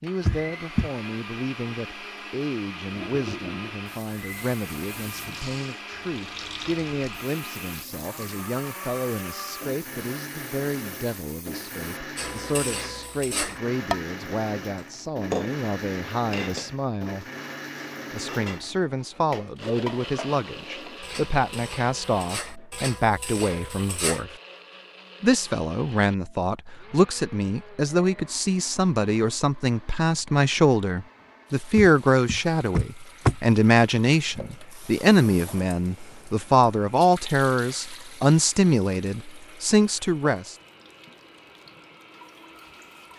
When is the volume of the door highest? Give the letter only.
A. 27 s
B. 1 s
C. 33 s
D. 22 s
C.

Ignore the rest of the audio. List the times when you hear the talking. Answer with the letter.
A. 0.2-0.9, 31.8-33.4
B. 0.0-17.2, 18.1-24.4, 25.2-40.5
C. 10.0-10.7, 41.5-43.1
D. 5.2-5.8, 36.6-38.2
B.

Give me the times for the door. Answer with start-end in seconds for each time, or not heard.
0.2-0.9, 31.8-33.4.